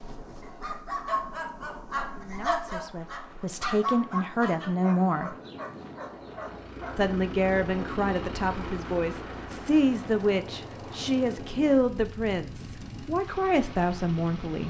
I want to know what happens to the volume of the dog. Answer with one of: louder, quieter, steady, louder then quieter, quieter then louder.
quieter.